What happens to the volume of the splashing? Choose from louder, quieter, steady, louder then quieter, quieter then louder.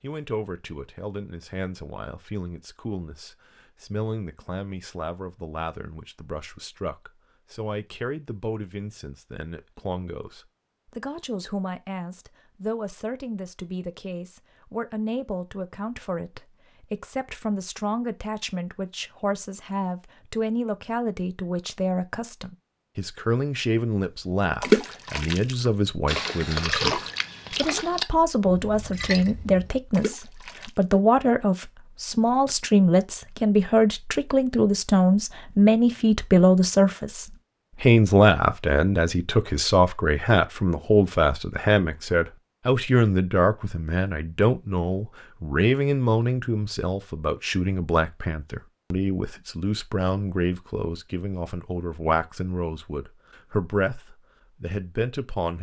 louder then quieter.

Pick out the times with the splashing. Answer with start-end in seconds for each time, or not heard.
24.6-30.9.